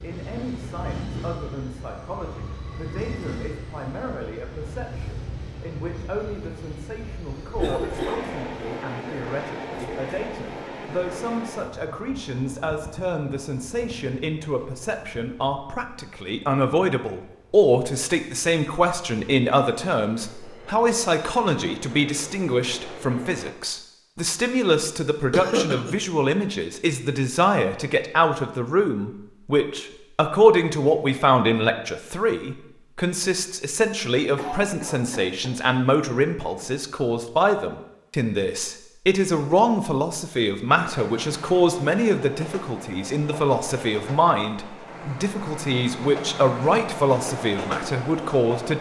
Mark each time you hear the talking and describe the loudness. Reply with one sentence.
The talking can be heard from 0.0 to 48.7 s, getting louder.